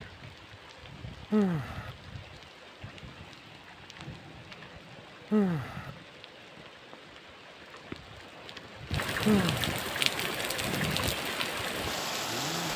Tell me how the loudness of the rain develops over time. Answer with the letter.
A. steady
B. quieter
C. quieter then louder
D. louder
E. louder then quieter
D.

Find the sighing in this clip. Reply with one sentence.
The sighing can be heard from 1.3 to 1.9 s, from 5.3 to 5.9 s and from 9.2 to 9.8 s.